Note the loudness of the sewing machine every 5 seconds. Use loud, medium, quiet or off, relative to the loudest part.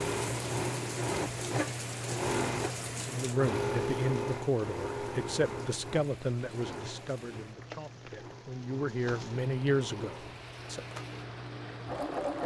loud, medium, medium.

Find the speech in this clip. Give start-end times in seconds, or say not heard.
3.0-10.8.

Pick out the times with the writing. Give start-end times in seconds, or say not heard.
not heard.